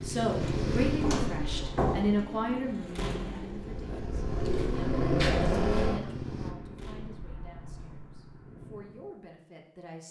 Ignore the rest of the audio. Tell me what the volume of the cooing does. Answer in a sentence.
The volume of the cooing goes down, then up.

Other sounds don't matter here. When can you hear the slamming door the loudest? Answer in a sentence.
The loudest moment of the slamming door is at 3 seconds.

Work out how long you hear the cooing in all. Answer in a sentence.
You can hear the cooing for 6 seconds altogether.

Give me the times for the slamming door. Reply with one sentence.
You can hear the slamming door from 3.0 to 3.5 s and from 6.8 to 7.3 s.